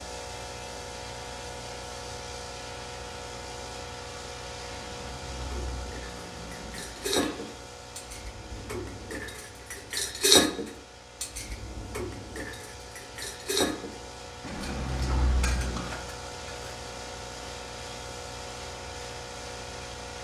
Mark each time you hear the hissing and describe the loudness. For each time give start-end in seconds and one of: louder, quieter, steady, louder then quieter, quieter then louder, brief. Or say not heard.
0.0-20.2 quieter then louder.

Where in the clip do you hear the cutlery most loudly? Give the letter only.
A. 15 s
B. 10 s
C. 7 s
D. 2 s
B.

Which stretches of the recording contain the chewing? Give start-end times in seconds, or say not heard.
4.7-7.3, 14.4-15.9.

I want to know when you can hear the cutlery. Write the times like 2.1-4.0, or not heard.
5.5-16.6.